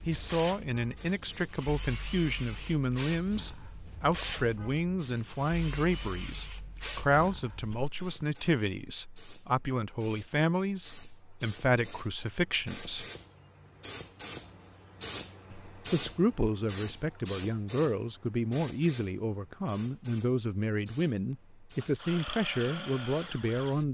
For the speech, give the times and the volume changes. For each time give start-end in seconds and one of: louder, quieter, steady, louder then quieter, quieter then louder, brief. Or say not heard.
0.1-13.1 steady
15.5-23.8 steady.